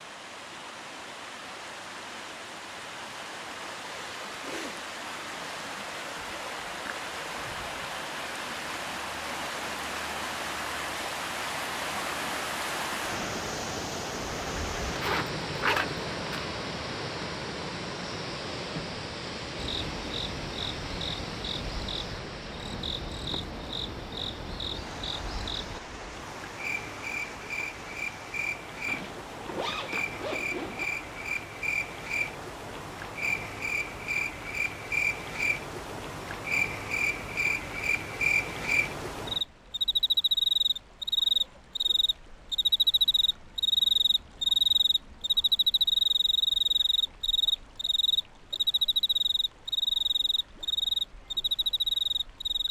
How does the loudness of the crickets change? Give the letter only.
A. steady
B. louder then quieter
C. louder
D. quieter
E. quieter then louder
C.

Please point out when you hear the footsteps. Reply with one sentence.
You can't hear the footsteps here.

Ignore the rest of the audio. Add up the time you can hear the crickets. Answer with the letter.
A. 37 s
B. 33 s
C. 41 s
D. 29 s
B.